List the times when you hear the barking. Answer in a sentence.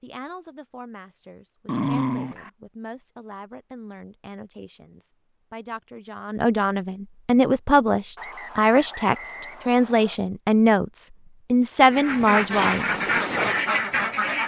The barking can be heard from 1.6 to 2.5 s.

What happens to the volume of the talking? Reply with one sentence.
The volume of the talking goes up.